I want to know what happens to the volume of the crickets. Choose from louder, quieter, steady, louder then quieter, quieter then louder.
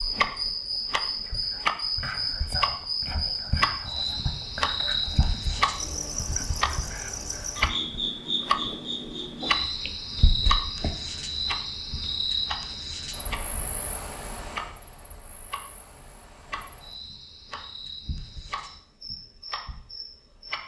quieter.